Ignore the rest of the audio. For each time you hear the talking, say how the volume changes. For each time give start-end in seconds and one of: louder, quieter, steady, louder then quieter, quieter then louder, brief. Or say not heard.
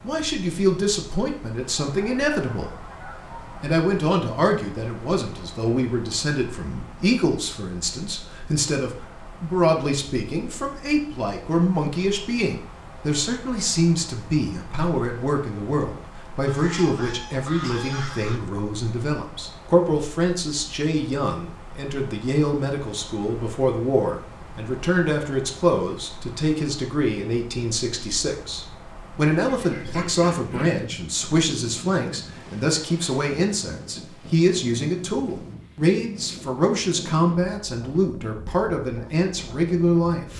0.0-40.3 steady.